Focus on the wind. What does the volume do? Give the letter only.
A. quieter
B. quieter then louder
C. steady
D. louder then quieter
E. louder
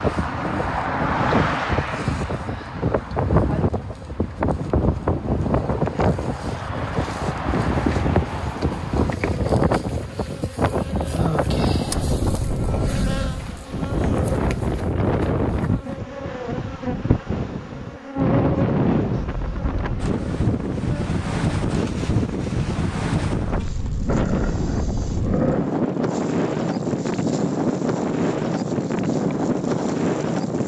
C.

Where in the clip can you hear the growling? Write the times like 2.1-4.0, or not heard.
0.1-2.2, 12.8-14.7, 24.1-25.7.